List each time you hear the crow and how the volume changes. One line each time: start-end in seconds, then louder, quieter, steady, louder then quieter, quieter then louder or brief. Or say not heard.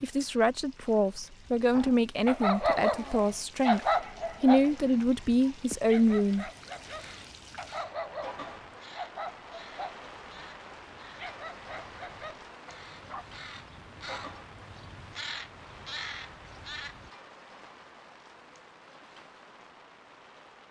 6.8-17.1 louder.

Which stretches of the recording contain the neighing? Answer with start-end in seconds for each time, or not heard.
not heard.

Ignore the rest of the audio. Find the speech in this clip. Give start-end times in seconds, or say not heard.
0.0-6.5.